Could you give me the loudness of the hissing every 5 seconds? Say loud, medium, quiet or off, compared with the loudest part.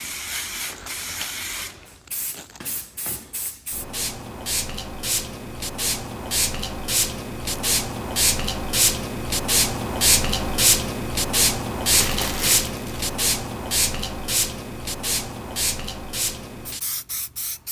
medium, loud, loud, medium.